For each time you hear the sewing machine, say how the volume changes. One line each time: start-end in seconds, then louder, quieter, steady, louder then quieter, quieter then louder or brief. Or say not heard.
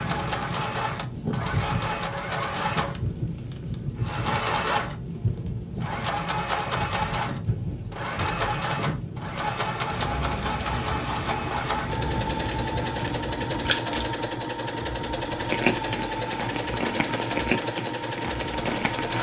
0.0-19.1 steady.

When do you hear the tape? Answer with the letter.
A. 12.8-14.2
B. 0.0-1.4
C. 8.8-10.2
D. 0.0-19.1
A.